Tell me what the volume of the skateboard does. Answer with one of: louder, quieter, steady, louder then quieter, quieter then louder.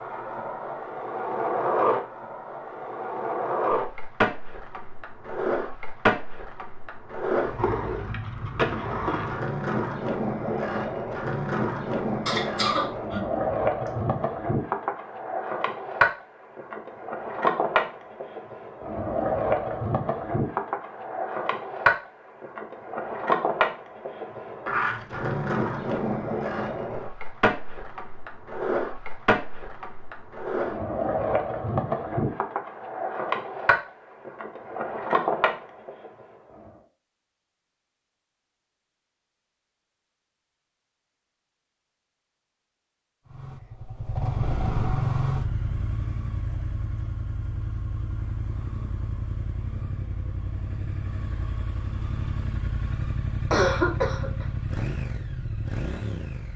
steady.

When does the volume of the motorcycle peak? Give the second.
45 s.